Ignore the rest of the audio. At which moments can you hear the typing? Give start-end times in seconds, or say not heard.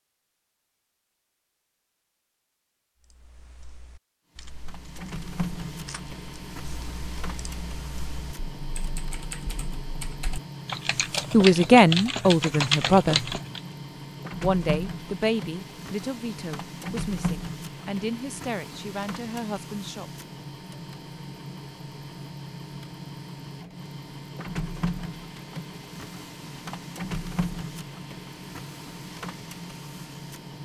3.0-13.6.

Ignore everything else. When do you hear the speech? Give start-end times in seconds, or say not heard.
11.3-13.3, 14.4-20.1.